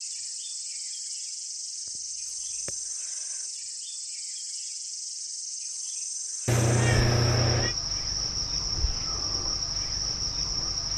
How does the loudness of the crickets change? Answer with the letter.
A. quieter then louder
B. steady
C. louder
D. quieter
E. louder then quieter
C.